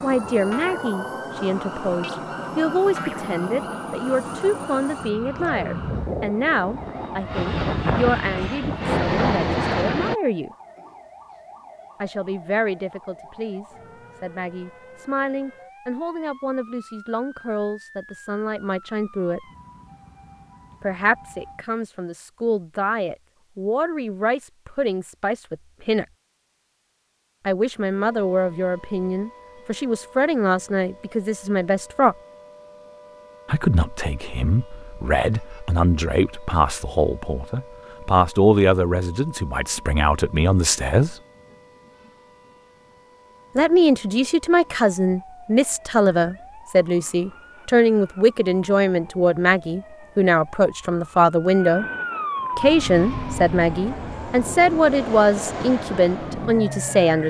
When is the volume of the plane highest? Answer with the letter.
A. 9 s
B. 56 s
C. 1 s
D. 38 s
A.